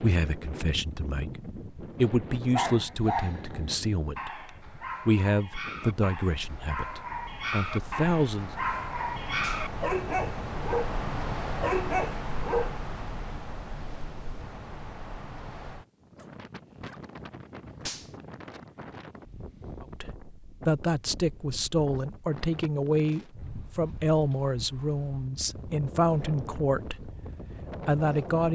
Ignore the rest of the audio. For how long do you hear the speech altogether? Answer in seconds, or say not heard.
17 s.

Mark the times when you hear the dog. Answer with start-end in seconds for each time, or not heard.
2.5-10.9, 11.6-12.8.